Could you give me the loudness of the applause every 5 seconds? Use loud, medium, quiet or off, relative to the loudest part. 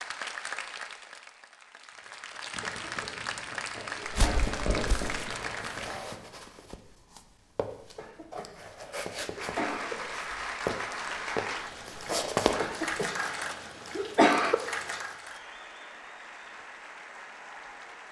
loud, loud, loud, medium.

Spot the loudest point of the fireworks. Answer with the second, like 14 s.
5 s.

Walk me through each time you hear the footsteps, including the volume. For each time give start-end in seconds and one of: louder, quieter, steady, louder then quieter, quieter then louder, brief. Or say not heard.
4.0-13.1 louder.